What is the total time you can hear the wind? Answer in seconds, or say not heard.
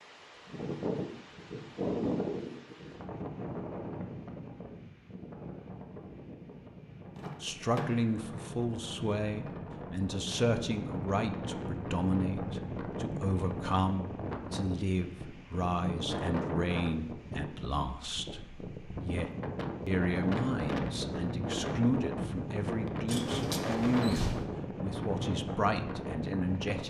27 s.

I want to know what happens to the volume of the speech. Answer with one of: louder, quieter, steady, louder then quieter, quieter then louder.
steady.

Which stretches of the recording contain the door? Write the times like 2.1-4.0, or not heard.
7.2-8.2, 23.1-24.4.